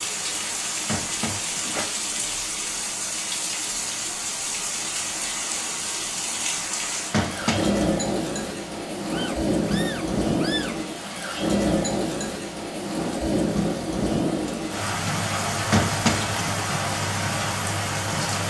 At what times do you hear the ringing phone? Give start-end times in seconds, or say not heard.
0.8-1.9, 7.1-7.8, 15.7-16.6.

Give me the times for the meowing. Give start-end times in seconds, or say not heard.
9.1-10.8.